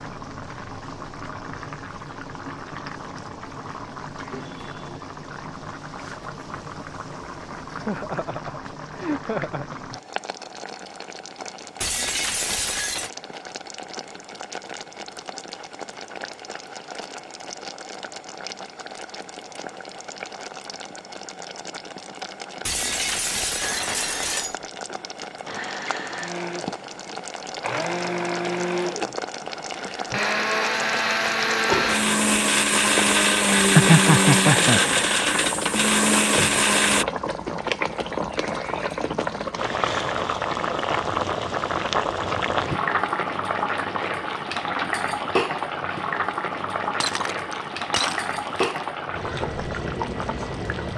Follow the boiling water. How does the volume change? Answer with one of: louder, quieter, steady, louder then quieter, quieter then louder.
louder.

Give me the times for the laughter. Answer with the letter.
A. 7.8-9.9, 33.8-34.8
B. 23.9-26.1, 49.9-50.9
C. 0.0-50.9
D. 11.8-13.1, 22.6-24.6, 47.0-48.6
A.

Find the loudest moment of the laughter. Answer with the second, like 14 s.
34 s.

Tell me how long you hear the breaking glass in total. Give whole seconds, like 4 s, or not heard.
5 s.